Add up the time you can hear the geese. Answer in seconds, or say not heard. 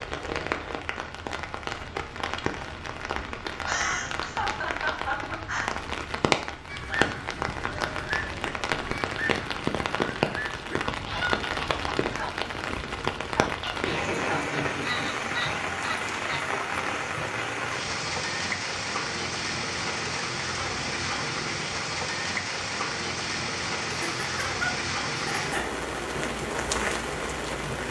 10 s.